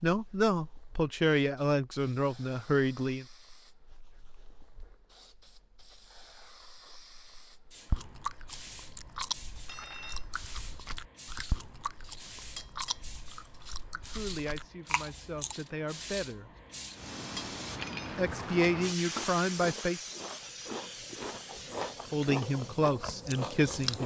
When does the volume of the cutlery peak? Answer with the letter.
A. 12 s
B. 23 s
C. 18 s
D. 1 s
C.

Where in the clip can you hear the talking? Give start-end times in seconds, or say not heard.
0.0-3.2, 13.9-16.5, 18.1-20.0, 22.1-24.0.